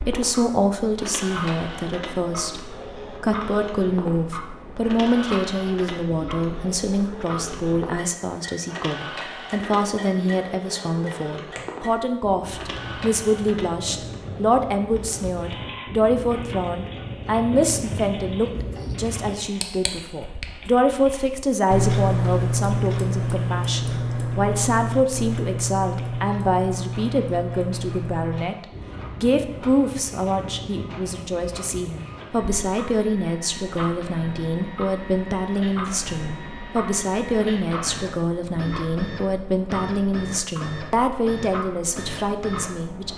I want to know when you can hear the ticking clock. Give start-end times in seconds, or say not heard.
0.0-43.1.